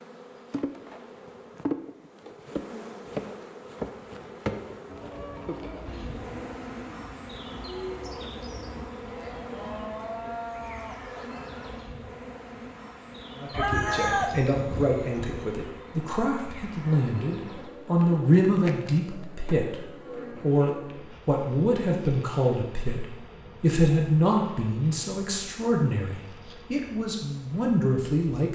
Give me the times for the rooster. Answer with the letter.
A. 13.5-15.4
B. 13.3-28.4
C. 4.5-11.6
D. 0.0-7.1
A.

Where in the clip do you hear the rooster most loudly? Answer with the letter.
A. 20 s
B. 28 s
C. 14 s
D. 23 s
C.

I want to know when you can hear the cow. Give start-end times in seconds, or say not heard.
4.5-11.6.